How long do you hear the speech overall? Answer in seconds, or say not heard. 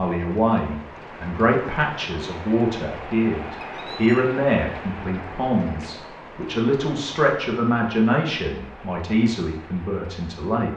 11 s.